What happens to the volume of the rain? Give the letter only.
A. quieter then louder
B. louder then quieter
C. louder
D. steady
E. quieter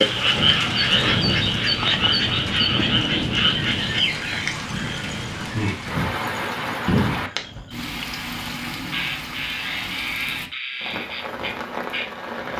E.